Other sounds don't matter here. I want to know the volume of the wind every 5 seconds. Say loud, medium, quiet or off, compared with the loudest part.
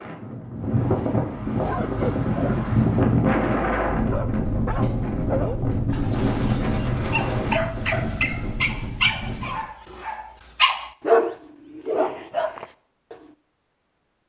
loud, loud, off.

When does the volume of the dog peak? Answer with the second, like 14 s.
11 s.